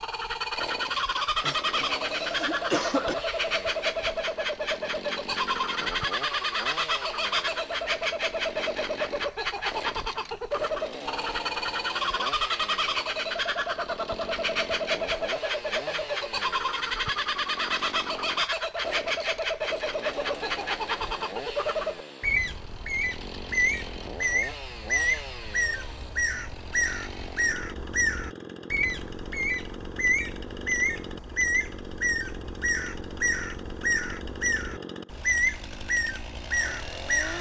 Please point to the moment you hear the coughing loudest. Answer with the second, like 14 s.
3 s.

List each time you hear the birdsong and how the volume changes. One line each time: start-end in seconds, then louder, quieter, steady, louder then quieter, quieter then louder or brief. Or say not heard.
0.0-37.3 steady.